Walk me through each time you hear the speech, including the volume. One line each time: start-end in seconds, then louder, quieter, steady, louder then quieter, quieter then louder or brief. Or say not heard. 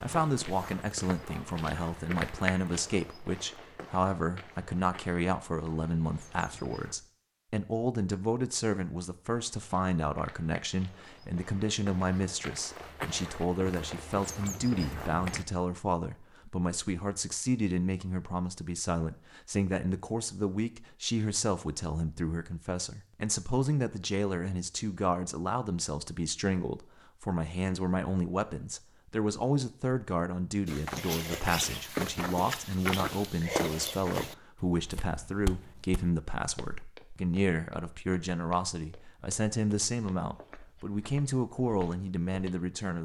0.0-43.0 steady.